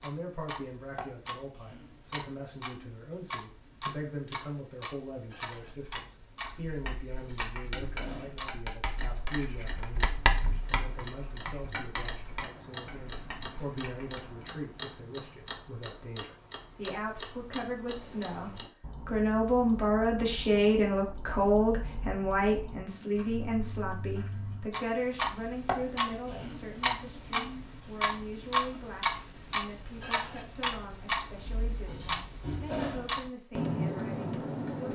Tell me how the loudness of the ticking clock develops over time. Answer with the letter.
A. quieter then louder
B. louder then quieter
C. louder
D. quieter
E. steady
C.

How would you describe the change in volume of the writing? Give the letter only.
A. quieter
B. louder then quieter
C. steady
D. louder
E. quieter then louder
B.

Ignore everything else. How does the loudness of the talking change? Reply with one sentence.
The volume of the talking goes up, then down.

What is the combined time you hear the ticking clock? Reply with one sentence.
You can hear the ticking clock for 35 seconds altogether.